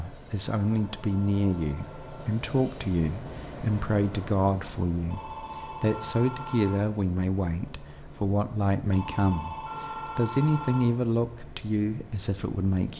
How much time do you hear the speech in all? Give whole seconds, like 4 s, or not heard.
13 s.